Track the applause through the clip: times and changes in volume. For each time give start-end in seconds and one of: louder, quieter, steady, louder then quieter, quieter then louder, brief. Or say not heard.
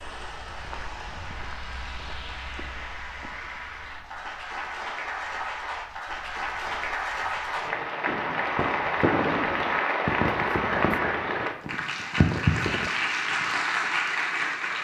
0.0-14.7 louder.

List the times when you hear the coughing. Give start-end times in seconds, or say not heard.
not heard.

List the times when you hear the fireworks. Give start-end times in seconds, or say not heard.
8.1-12.9.